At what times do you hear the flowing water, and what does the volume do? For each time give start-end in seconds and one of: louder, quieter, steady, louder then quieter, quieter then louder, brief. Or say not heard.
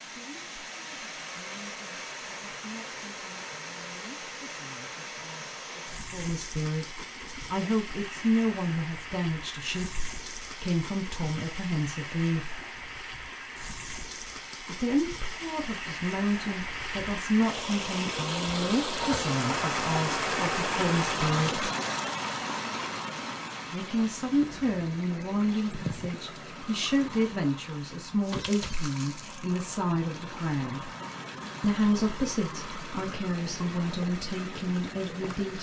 0.0-35.5 louder then quieter.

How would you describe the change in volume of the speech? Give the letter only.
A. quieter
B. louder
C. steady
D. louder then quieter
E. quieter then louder
B.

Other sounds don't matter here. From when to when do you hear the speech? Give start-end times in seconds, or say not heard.
0.0-12.6, 14.7-21.6, 23.7-30.9, 31.6-35.5.